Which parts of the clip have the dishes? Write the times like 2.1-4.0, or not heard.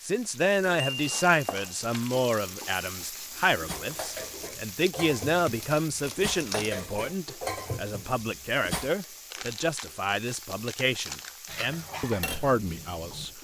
3.5-8.9, 11.4-13.3.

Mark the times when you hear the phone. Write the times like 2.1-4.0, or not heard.
not heard.